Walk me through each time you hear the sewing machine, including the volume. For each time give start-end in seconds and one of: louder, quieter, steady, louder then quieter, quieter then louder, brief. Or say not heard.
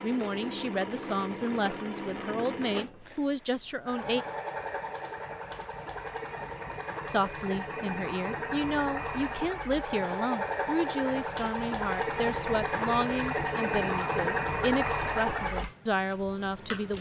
0.0-16.9 louder.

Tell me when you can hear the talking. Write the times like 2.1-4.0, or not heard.
0.0-4.2, 7.0-16.9.